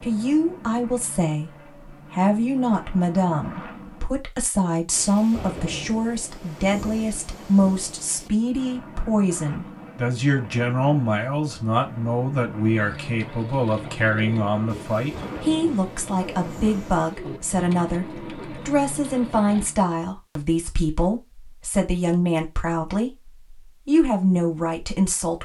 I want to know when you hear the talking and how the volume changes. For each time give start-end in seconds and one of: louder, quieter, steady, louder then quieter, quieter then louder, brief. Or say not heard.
0.0-1.5 brief
2.1-25.4 steady.